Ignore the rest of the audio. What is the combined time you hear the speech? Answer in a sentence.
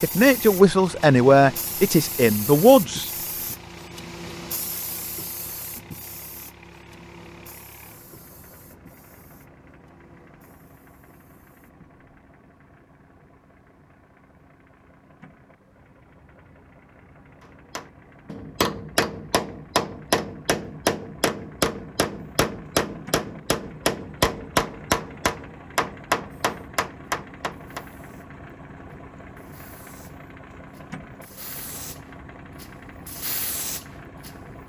The speech can be heard for 3 seconds in total.